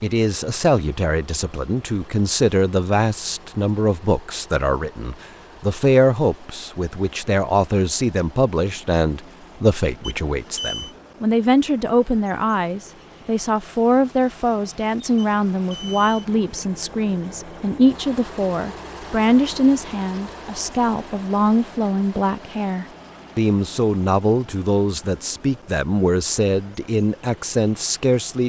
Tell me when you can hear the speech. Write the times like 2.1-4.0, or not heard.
0.0-28.4.